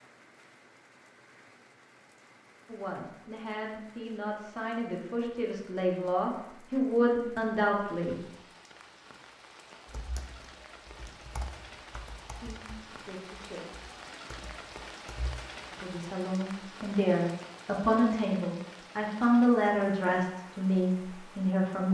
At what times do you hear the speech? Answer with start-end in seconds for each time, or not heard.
2.6-8.2, 12.3-13.7, 15.7-21.8.